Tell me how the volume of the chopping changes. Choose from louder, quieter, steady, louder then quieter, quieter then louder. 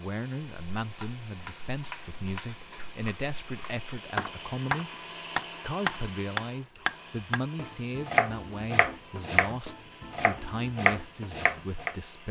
louder.